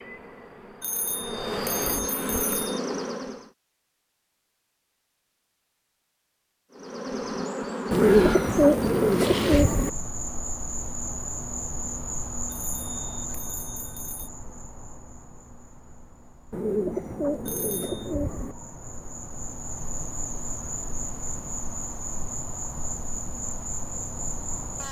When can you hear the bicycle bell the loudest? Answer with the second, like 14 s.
2 s.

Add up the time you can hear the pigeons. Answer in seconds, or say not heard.
4 s.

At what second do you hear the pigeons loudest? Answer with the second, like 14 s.
8 s.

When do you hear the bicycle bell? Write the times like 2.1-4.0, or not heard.
0.8-2.8, 12.4-14.3, 17.4-18.1.